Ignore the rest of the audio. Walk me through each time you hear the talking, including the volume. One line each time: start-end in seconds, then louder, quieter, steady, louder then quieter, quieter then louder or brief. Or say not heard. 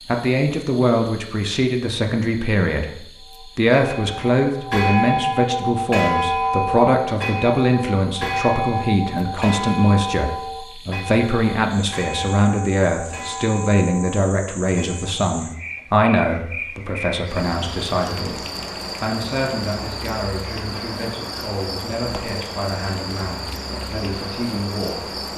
0.1-25.2 quieter.